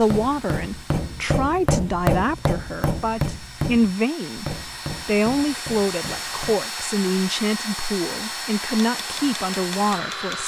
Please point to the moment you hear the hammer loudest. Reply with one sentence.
The loudest moment of the hammer is at 2 seconds.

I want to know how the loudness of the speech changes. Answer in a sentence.
The volume of the speech stays about the same.